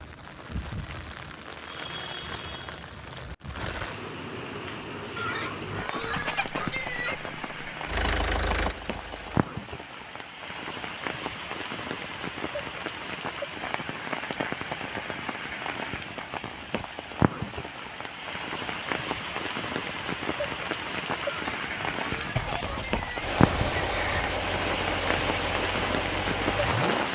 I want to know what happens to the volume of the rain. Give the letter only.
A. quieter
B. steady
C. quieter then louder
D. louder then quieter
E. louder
E.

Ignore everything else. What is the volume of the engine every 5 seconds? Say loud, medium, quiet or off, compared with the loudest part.
off, loud, off, off, loud, loud.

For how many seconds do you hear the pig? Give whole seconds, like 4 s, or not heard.
4 s.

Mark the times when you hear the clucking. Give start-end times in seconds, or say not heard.
6.1-8.0, 22.4-24.4.